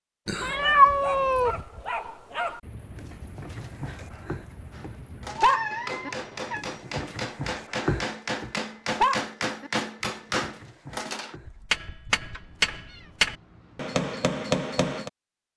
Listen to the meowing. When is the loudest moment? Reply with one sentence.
The volume of the meowing peaks at 1 second.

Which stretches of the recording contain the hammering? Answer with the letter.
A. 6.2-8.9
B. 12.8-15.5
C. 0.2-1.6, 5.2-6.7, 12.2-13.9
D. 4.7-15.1
D.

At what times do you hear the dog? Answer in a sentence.
You can hear the dog from 0.3 to 11.9 s.